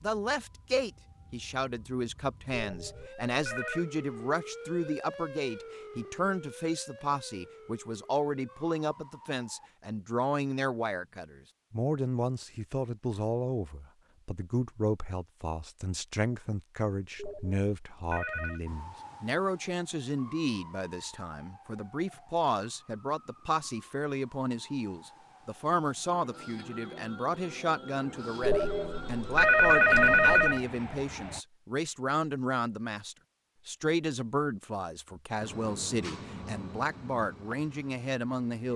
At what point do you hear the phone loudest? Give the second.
30 s.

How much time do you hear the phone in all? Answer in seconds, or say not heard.
5 s.